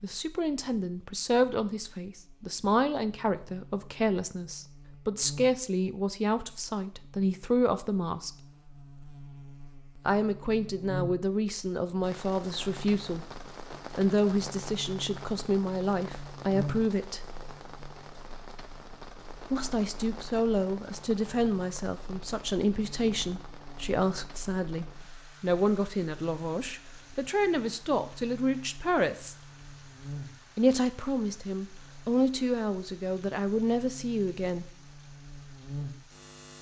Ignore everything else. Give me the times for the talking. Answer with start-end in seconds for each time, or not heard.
0.0-8.3, 9.9-13.2, 13.9-17.2, 19.4-29.4, 30.6-34.6.